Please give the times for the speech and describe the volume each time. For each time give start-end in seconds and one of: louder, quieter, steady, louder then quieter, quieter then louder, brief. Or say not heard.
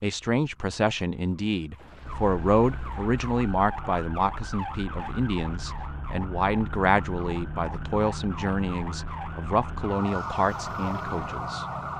0.0-11.7 steady.